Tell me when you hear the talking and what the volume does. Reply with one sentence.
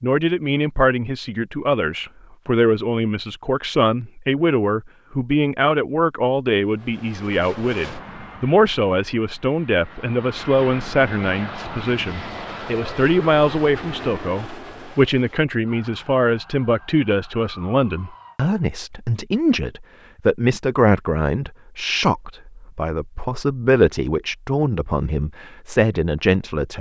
The talking can be heard from 0.0 to 26.7 s, at a steady volume.